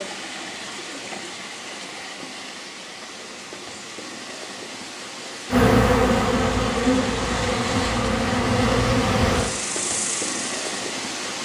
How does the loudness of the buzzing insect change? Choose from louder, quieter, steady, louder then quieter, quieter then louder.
quieter.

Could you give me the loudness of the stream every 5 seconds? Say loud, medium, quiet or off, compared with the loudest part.
medium, loud, loud.